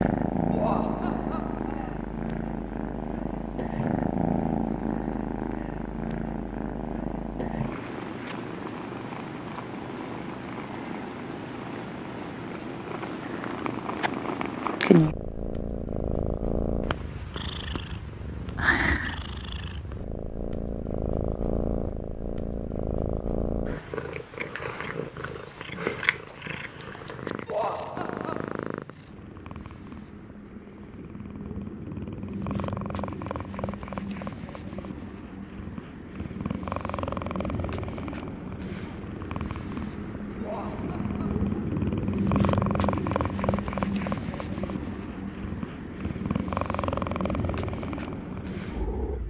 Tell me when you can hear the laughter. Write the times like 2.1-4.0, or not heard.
0.5-1.9, 27.4-28.6, 40.4-41.5.